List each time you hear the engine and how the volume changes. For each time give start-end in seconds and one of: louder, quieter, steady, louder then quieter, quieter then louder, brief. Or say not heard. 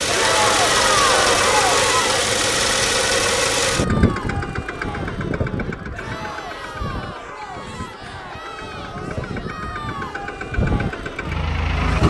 0.0-12.0 quieter then louder.